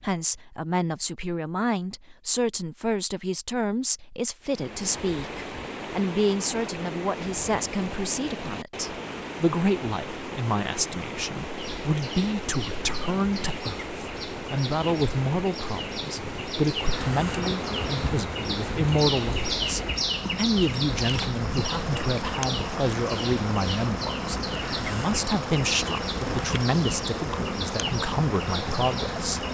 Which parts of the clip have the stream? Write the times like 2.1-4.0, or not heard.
4.4-29.4.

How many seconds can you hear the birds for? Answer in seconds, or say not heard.
18 s.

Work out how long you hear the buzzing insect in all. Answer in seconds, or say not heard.
13 s.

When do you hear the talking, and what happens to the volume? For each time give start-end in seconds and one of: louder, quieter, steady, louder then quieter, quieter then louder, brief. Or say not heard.
0.0-29.4 steady.